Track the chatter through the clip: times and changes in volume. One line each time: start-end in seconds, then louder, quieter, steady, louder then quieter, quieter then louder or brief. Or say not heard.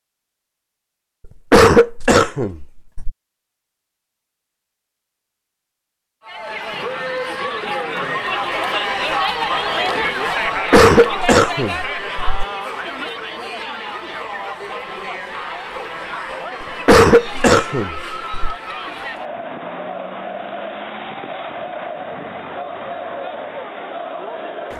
6.2-24.7 quieter.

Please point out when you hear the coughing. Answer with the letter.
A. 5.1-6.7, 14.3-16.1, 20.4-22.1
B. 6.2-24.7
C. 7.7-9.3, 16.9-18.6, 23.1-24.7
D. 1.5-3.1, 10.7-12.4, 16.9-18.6
D.